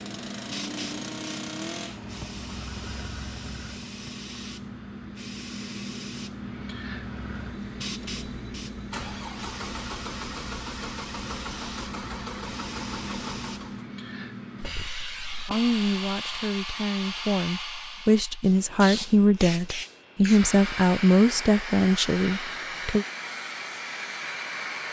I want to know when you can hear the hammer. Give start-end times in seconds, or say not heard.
not heard.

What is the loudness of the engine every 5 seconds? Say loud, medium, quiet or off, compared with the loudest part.
loud, loud, loud, off, off.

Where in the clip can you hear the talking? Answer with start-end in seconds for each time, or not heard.
15.4-23.1.